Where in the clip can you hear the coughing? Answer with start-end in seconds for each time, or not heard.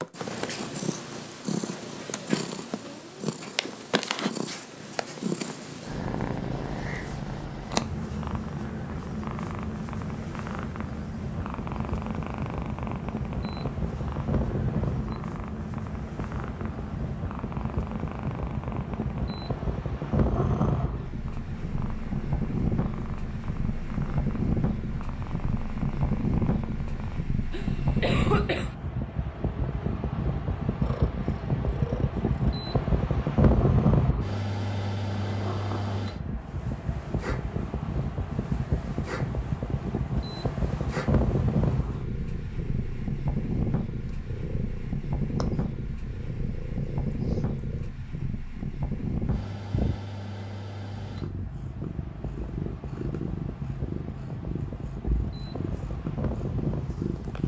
27.5-28.8.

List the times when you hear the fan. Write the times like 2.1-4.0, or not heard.
11.2-57.4.